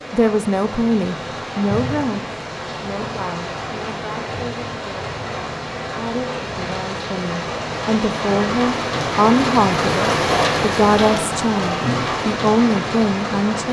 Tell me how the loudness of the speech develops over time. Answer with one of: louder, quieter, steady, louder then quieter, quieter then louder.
quieter then louder.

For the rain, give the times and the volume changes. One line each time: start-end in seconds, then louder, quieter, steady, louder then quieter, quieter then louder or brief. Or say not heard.
0.0-13.6 louder.